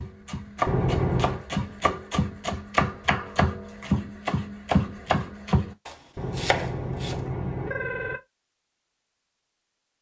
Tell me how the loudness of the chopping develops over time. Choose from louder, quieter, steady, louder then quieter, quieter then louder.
steady.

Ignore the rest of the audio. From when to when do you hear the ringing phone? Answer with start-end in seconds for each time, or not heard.
0.7-1.4, 6.2-8.2.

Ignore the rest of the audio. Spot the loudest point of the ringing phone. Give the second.
1 s.